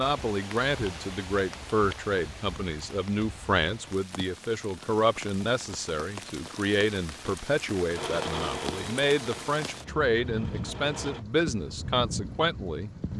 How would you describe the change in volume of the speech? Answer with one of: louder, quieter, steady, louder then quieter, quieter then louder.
steady.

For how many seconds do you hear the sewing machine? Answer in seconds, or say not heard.
3 s.